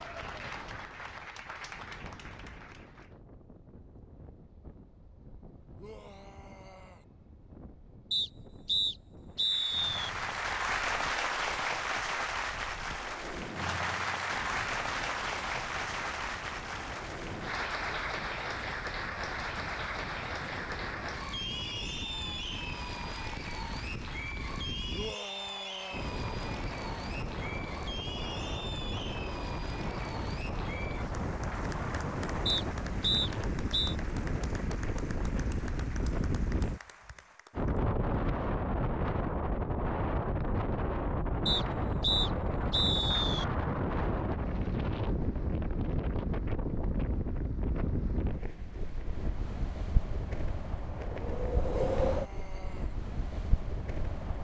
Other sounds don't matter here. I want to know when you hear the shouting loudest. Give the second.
25 s.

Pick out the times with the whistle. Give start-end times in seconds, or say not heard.
8.1-10.1, 32.5-34.0, 41.5-43.5.